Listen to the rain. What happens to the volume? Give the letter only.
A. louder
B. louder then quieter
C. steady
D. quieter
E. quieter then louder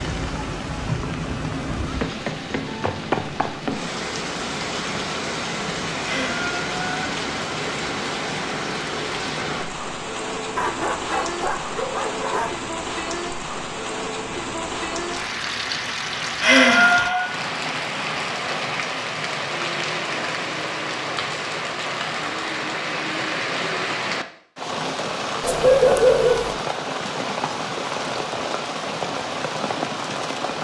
C.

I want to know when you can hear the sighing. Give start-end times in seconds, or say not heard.
6.0-7.0, 16.4-17.4.